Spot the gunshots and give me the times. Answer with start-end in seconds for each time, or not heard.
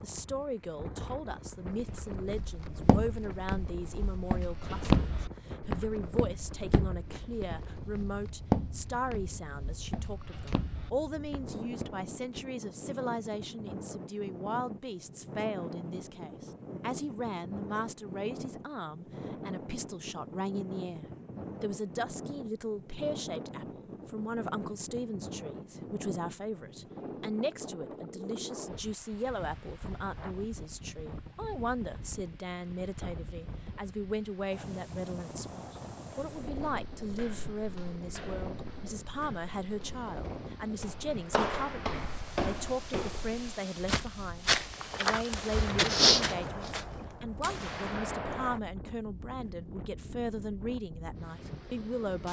45.3-48.6.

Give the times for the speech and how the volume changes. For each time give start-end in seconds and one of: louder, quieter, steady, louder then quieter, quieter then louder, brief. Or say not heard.
0.0-52.2 steady.